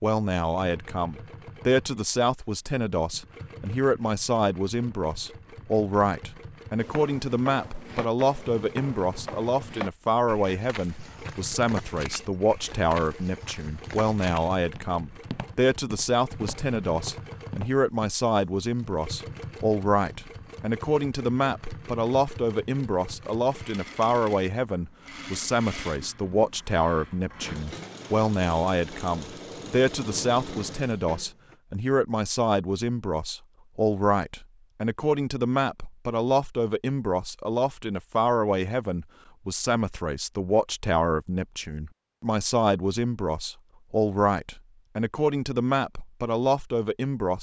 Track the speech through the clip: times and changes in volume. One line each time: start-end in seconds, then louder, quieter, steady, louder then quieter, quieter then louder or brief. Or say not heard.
0.0-47.3 steady.